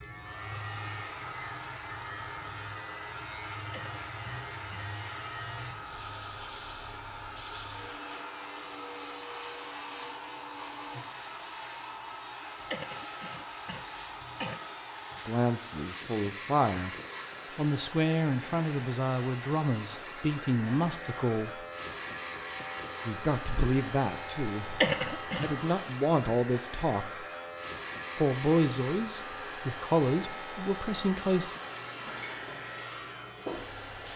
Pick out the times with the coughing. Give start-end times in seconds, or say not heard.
3.6-4.8, 12.6-14.6, 24.7-25.6.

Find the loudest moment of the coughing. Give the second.
25 s.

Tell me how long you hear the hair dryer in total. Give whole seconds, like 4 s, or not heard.
34 s.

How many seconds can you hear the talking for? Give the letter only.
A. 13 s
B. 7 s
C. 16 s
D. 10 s
A.